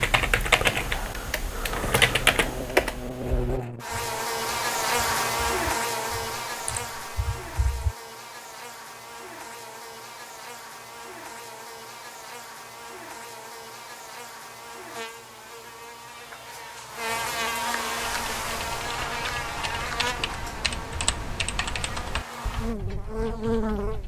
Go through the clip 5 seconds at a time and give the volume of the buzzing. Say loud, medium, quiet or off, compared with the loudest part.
loud, loud, medium, loud, loud.